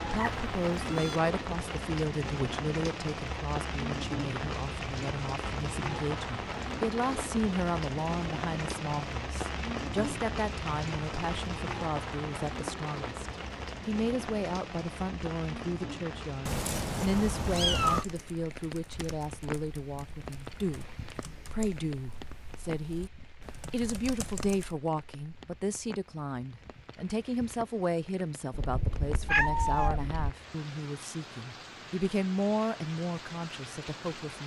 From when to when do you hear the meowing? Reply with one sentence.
The meowing can be heard from 0.1 to 1.2 s, from 16.4 to 18.1 s and from 28.6 to 30.3 s.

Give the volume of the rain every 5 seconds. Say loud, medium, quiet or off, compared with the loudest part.
loud, loud, loud, medium, quiet, quiet, medium.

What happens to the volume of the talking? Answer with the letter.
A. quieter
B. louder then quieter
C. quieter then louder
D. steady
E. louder
D.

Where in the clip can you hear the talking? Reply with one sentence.
You can hear the talking from 0.0 to 34.4 s.